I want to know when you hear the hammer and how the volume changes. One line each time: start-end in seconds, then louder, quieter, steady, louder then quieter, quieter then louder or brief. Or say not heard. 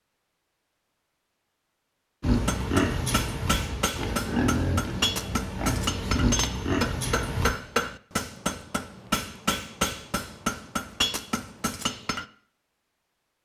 2.4-12.2 steady.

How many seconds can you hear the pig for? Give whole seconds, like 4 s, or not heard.
5 s.